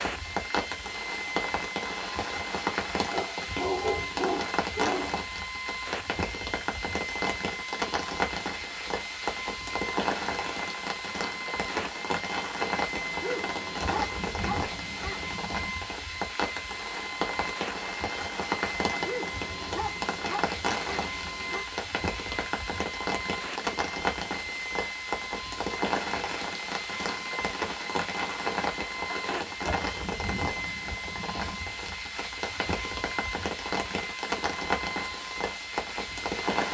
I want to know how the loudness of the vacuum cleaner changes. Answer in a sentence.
The loudness of the vacuum cleaner stays about the same.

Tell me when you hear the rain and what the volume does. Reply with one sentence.
You can hear the rain from 0.0 to 36.6 s, at a steady volume.